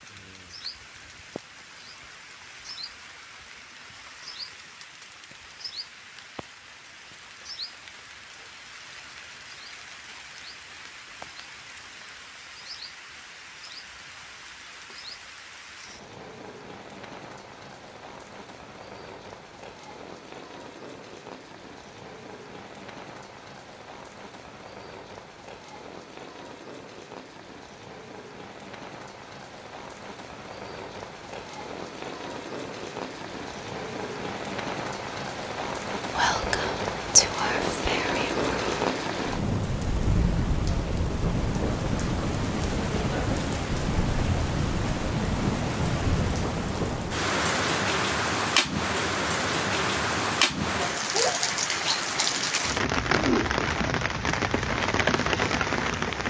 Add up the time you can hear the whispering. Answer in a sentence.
The whispering can be heard for 3 seconds in total.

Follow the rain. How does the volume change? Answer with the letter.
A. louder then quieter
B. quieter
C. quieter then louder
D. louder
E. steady
D.